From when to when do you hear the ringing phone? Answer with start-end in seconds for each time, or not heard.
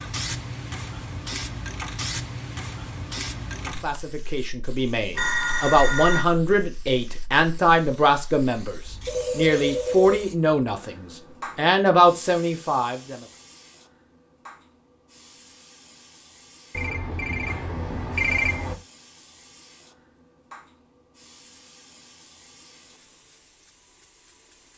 5.2-6.2, 9.1-10.2, 16.8-18.8.